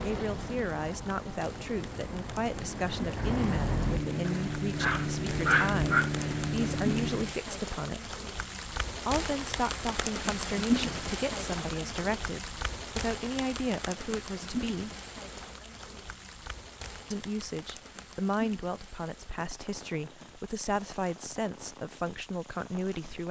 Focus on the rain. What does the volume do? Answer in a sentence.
The volume of the rain goes up, then down.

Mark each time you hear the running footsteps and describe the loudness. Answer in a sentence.
You can't hear the running footsteps here.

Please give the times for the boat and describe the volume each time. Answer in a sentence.
The boat can be heard from 0.0 to 7.3 s, getting louder.